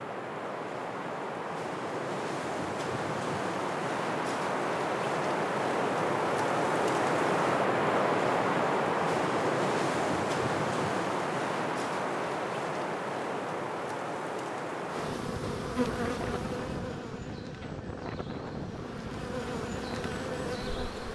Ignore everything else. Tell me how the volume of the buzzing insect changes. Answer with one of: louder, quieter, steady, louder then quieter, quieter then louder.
quieter then louder.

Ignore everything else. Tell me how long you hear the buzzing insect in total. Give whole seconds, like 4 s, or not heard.
6 s.